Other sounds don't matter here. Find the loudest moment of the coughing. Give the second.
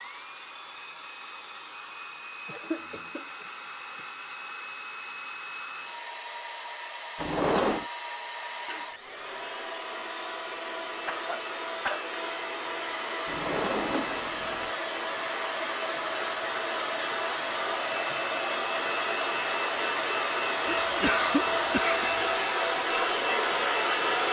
21 s.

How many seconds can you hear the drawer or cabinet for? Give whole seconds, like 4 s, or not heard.
2 s.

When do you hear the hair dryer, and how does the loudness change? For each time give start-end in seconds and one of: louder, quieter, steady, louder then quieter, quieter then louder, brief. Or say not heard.
0.0-24.2 louder.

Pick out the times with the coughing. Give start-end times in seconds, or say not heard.
2.5-4.0, 11.1-12.1, 20.6-22.1.